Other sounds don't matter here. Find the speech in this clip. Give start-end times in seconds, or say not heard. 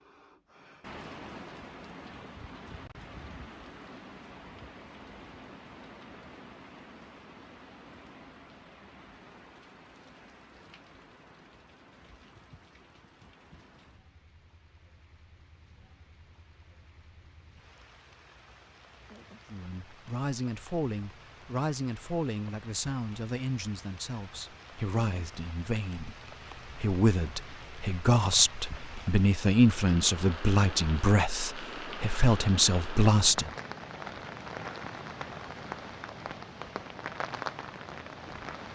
19.5-33.5.